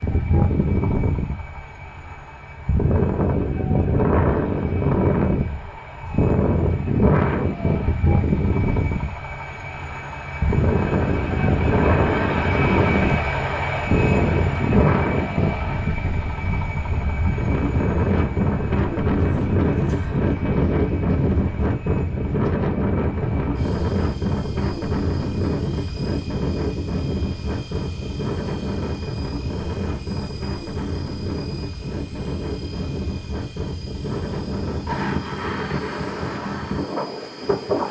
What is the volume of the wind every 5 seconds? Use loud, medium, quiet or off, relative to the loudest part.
loud, loud, loud, loud, loud, medium, medium, medium.